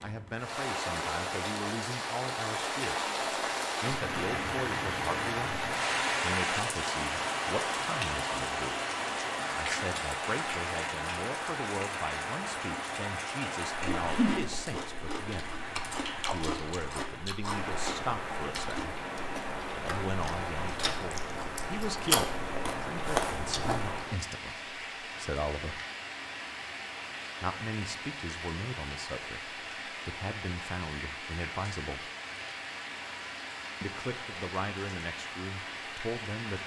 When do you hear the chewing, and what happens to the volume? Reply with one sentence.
The chewing can be heard from 13.7 to 24.1 s, getting quieter then louder.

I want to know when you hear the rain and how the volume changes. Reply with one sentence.
The rain can be heard from 0.0 to 36.6 s, getting quieter.